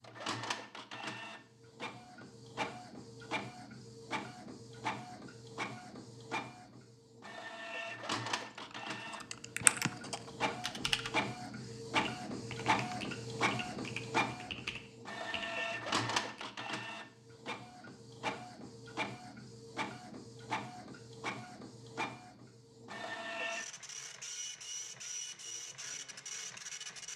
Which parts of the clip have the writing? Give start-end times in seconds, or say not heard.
not heard.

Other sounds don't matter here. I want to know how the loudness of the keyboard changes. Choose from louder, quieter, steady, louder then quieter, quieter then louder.
quieter.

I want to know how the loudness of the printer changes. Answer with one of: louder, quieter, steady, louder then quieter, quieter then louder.
louder then quieter.